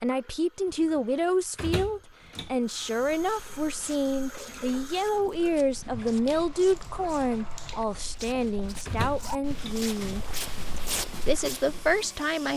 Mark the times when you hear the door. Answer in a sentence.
You can hear the door from 0.9 to 2.5 s and from 8.8 to 9.8 s.